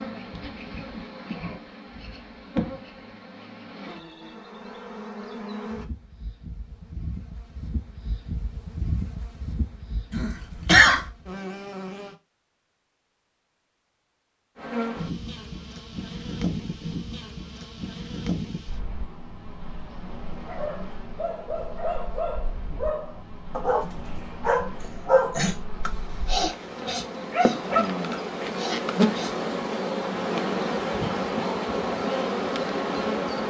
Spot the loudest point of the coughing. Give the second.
11 s.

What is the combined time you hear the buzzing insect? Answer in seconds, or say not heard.
31 s.